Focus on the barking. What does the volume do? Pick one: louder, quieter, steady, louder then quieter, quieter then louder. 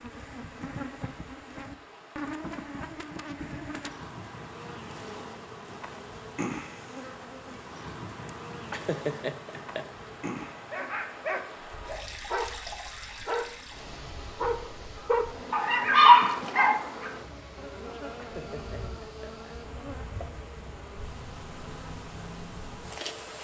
louder.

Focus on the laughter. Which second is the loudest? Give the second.
9 s.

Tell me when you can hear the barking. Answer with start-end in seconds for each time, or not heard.
10.7-17.1.